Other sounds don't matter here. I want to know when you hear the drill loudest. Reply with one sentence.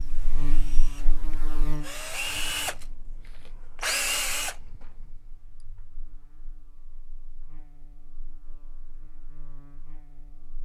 The loudest moment of the drill is at 4 seconds.